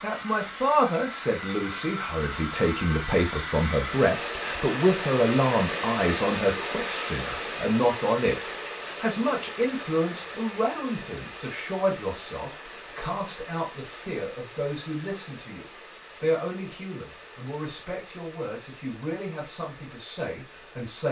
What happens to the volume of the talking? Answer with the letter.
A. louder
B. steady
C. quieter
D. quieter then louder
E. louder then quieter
C.